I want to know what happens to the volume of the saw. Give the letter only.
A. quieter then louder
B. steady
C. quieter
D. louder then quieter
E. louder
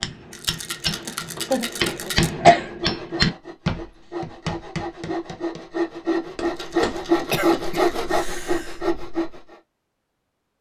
E.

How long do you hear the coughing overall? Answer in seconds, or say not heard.
3 s.